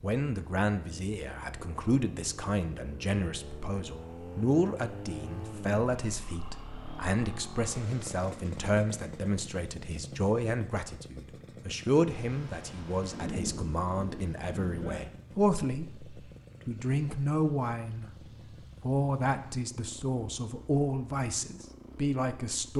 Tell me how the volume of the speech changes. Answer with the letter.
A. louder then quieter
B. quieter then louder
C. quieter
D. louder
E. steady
E.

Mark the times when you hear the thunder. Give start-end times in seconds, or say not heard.
12.1-15.0.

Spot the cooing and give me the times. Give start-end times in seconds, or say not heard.
not heard.